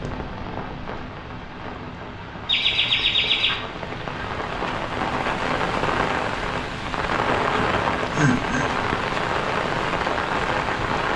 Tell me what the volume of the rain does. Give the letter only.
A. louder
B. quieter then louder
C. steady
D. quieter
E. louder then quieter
A.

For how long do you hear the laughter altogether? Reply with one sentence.
You can hear the laughter for 2 seconds altogether.